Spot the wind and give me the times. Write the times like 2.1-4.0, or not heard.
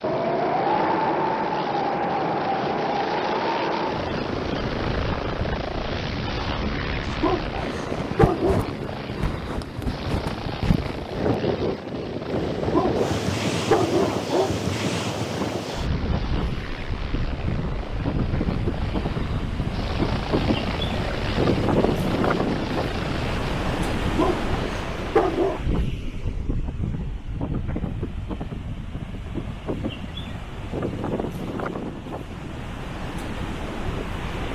0.0-34.5.